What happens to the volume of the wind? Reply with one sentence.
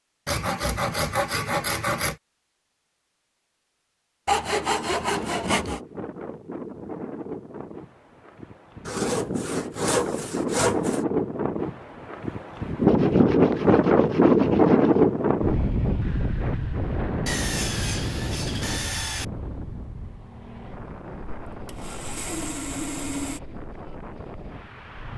The loudness of the wind goes up, then down.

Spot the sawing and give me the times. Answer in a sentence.
The sawing can be heard from 0.2 to 2.1 s, from 4.2 to 5.8 s, from 8.8 to 11.0 s, from 12.8 to 15.1 s, from 17.2 to 19.2 s and from 21.5 to 23.4 s.